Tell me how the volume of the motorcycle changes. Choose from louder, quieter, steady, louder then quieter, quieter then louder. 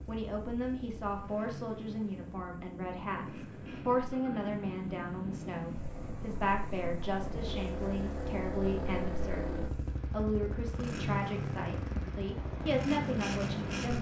louder.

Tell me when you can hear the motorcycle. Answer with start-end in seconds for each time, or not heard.
0.0-13.9.